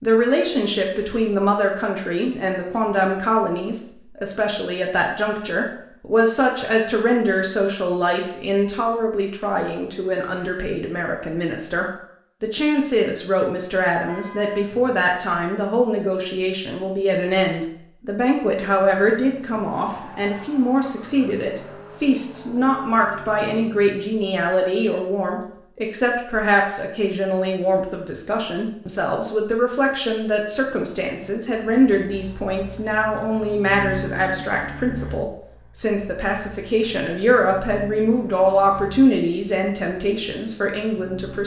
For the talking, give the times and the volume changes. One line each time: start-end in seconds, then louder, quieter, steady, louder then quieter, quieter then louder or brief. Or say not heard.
0.0-41.4 steady.